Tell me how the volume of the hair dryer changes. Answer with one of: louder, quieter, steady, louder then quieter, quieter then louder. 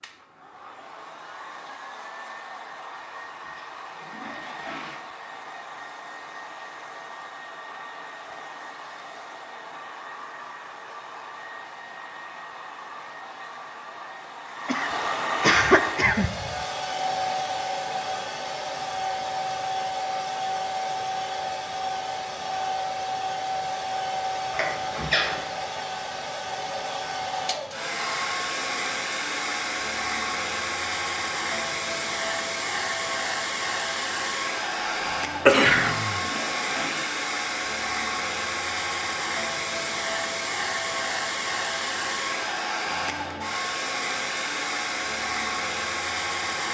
louder.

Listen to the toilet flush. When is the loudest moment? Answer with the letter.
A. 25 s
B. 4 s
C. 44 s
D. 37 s
A.